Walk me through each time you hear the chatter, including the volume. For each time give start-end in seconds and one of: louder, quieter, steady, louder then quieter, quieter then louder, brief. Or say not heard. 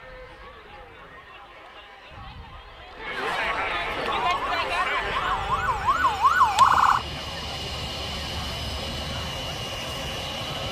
0.0-10.6 louder then quieter.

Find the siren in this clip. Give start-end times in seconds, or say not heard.
4.2-7.0.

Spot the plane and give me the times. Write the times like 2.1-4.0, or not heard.
0.0-10.6.